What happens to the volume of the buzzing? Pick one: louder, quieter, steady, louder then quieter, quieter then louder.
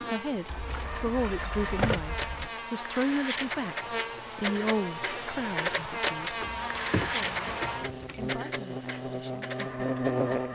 louder.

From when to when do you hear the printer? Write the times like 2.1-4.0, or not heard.
0.0-10.5.